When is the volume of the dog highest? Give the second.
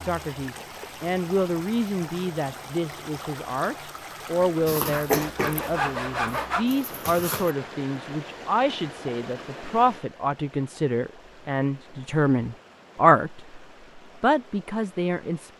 5 s.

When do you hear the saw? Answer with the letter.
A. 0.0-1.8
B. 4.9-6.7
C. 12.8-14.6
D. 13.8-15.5
B.